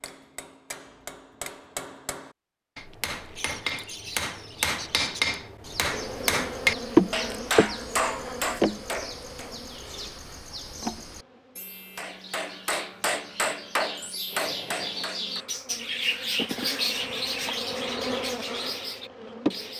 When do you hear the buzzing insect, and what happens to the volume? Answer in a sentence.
You can hear the buzzing insect from 5.8 to 11.7 s, getting quieter then louder; and from 14.2 to 19.7 s, getting louder then quieter.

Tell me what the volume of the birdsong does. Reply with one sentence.
The volume of the birdsong goes up.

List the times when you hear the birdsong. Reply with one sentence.
You can hear the birdsong from 3.4 to 19.7 s.